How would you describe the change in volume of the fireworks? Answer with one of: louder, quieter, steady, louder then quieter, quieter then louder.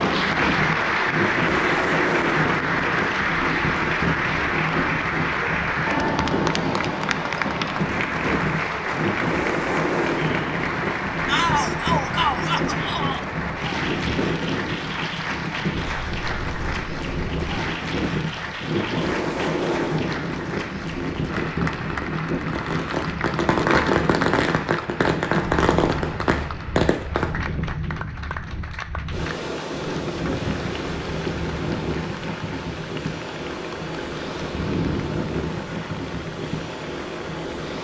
louder.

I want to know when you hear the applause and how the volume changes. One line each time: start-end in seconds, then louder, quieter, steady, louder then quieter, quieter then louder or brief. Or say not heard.
0.0-37.7 quieter.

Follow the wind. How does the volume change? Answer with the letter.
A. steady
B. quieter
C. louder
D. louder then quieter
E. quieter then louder
A.